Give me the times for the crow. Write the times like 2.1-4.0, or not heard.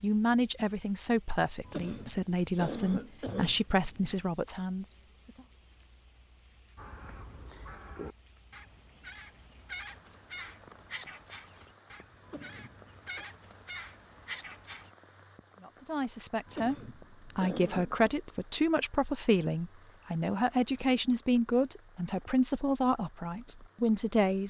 6.8-14.9.